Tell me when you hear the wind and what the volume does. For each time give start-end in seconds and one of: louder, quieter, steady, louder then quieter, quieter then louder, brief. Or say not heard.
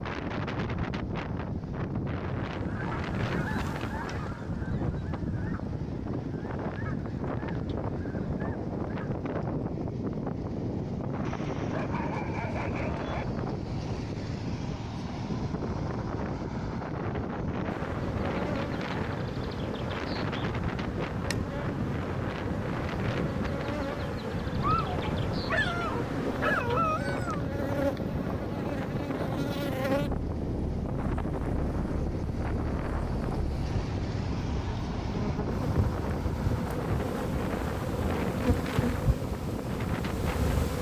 0.0-40.7 steady.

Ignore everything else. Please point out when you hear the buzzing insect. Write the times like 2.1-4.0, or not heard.
17.6-40.7.